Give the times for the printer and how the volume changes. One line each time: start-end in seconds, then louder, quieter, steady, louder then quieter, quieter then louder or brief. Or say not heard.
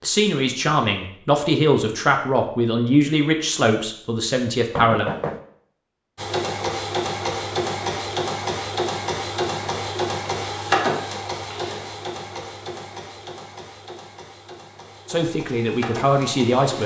6.2-16.8 quieter.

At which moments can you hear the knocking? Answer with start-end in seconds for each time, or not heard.
4.7-5.4.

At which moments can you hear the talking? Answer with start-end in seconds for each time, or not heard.
0.0-5.1, 15.1-16.8.